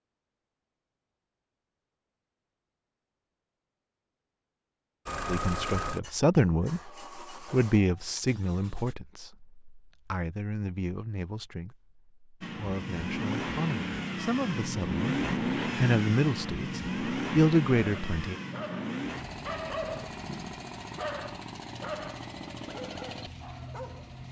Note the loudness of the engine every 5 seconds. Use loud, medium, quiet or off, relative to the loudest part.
off, medium, loud, loud, medium.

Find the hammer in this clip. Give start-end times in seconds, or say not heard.
not heard.